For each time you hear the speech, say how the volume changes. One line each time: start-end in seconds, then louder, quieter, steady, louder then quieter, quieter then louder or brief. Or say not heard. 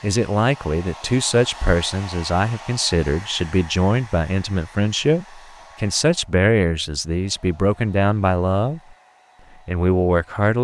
0.0-8.8 steady
9.7-10.5 brief.